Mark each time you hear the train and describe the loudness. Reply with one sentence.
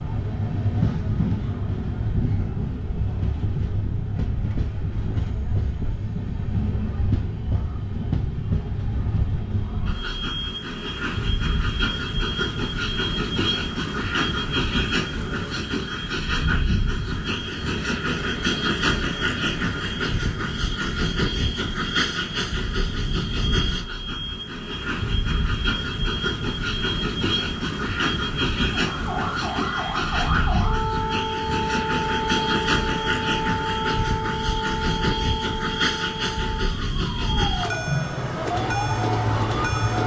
The train can be heard from 0.0 to 40.0 s, at a steady volume.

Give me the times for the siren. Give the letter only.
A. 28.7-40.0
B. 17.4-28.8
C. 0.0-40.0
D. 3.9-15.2
A.